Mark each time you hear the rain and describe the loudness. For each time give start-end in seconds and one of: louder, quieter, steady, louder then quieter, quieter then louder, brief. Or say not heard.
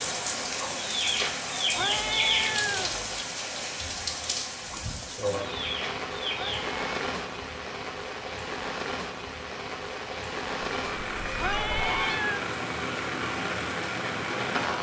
0.0-14.7 steady.